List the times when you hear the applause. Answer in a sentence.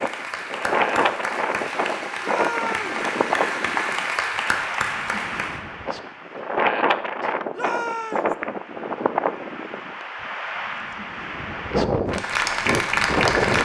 The applause can be heard from 0.0 to 5.6 s and from 12.1 to 13.6 s.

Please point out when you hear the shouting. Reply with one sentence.
The shouting can be heard from 2.2 to 3.0 s and from 7.5 to 8.3 s.